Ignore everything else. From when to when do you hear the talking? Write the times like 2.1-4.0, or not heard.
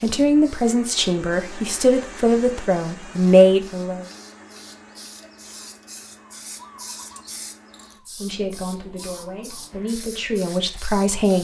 0.0-4.0, 8.2-11.3.